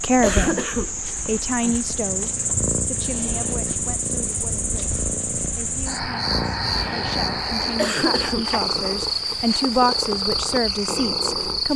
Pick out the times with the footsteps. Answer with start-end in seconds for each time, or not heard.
not heard.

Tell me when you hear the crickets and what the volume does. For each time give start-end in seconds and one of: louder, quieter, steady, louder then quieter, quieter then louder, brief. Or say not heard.
0.0-11.7 steady.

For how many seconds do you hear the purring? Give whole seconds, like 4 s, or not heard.
10 s.